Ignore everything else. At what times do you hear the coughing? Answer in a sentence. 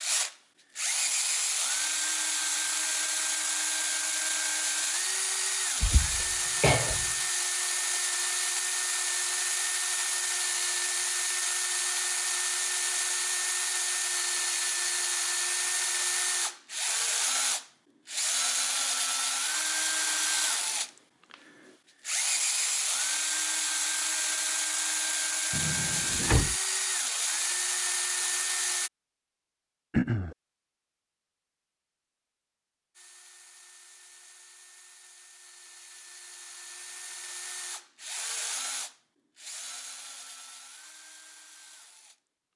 The coughing can be heard from 5.8 to 7.1 s and from 29.9 to 30.4 s.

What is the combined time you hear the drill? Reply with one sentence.
You can hear the drill for 38 seconds altogether.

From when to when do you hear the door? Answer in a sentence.
The door can be heard from 25.5 to 26.6 s.